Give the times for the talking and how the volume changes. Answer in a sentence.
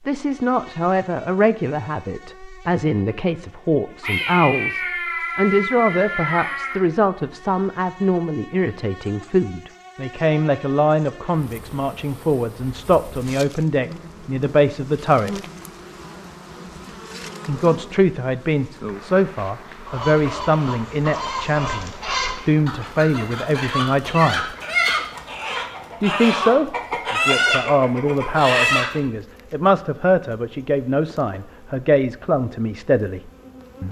The talking can be heard from 0.1 to 15.4 s, at a steady volume; from 17.4 to 24.6 s, at a steady volume; and from 26.0 to 33.8 s, at a steady volume.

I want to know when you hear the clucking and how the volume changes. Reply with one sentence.
You can hear the clucking from 19.9 to 29.0 s, getting louder.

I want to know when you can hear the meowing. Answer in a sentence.
You can hear the meowing from 4.0 to 6.8 s.